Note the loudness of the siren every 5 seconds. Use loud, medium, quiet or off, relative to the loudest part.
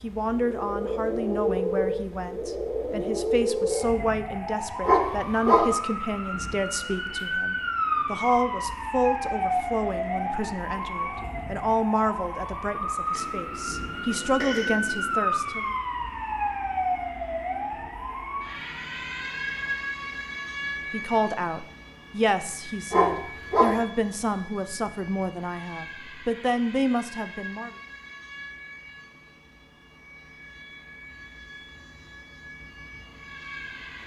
loud, loud, loud, loud, medium, quiet, quiet.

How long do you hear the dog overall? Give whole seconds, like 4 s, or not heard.
2 s.